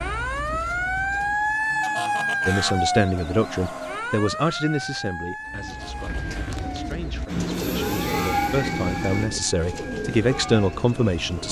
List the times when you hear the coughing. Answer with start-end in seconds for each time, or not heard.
not heard.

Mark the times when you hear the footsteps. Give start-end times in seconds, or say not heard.
not heard.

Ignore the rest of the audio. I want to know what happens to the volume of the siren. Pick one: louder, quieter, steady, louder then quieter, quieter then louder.
quieter.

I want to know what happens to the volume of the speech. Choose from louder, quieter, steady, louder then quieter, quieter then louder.
quieter then louder.